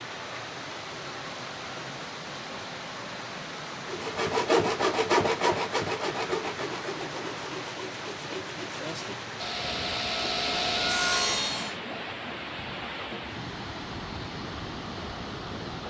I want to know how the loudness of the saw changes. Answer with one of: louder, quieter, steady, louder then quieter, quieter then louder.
quieter then louder.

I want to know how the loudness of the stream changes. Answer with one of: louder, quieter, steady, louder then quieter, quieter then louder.
steady.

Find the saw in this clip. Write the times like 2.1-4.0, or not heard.
3.9-11.8.